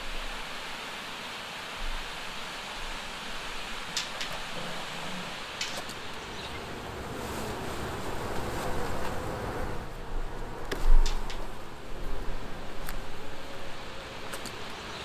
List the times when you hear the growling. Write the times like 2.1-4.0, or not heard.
3.9-5.8, 10.9-11.6.